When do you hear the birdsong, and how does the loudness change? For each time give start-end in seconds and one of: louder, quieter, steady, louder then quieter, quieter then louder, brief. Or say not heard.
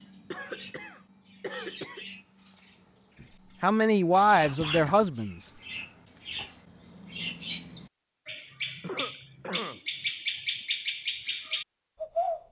0.0-12.4 louder.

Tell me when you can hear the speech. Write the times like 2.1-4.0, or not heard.
3.6-5.5.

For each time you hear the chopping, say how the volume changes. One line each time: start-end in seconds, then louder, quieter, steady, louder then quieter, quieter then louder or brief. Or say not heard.
not heard.